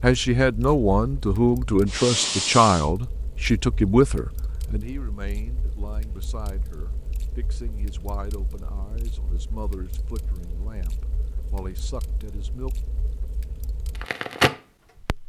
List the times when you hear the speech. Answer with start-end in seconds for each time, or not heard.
0.0-12.8.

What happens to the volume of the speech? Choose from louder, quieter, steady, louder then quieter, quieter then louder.
quieter.